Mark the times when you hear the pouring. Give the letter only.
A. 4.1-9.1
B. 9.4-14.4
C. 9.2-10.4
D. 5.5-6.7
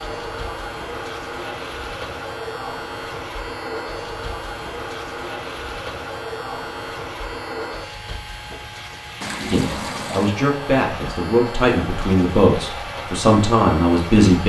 C.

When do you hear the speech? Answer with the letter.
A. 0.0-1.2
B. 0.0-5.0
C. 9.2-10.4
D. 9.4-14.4
D.